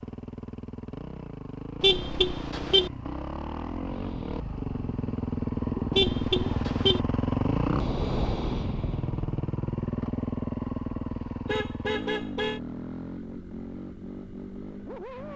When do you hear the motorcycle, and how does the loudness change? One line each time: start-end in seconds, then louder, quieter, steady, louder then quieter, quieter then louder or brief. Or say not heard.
0.0-15.3 louder then quieter.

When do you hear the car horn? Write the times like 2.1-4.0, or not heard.
1.8-2.9, 6.0-7.0, 11.4-12.6.